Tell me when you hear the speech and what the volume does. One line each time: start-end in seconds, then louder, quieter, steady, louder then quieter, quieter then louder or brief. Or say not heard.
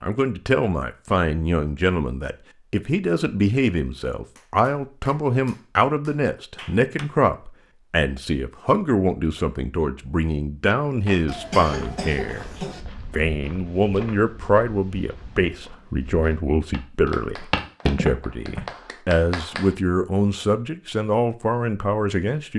0.0-12.4 steady
13.1-22.5 steady.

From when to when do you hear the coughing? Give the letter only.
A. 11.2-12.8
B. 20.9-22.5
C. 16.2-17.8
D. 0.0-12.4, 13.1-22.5
A.